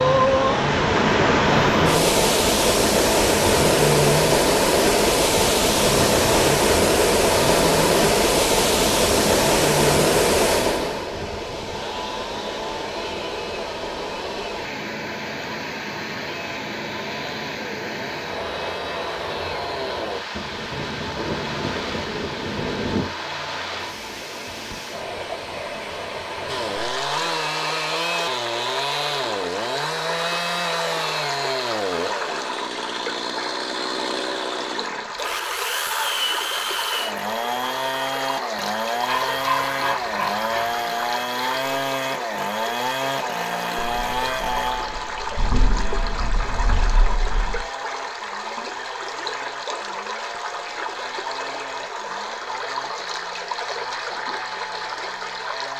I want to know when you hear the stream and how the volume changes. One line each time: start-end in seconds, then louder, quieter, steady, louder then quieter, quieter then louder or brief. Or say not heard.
0.0-55.7 quieter.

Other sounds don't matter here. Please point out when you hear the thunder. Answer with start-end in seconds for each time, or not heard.
20.3-23.1, 43.8-47.6.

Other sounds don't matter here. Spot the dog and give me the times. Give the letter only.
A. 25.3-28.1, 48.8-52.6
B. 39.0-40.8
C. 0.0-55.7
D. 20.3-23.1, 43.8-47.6
B.